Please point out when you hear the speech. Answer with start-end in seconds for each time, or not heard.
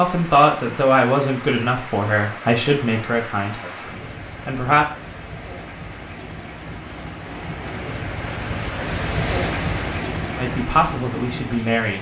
0.0-4.8, 10.3-11.9.